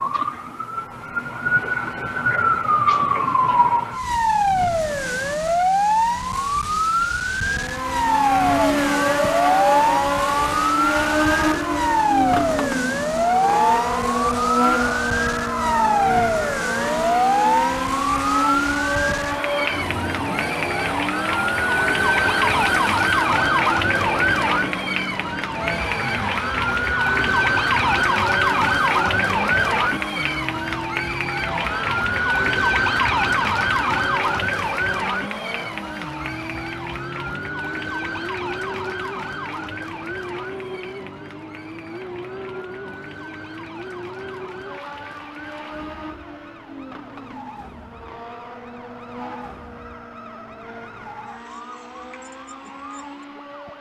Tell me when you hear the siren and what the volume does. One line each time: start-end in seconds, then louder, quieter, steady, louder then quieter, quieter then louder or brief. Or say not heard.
0.0-53.7 quieter.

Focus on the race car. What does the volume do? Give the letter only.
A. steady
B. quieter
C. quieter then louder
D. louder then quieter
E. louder
B.